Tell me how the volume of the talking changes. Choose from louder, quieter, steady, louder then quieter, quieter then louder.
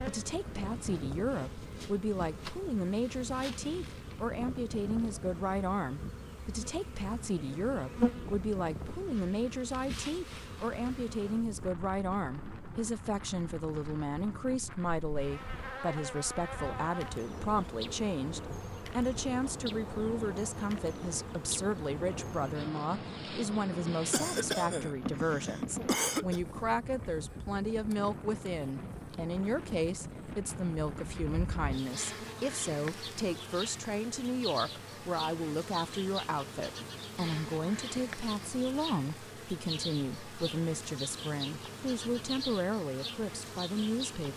steady.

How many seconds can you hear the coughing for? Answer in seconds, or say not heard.
2 s.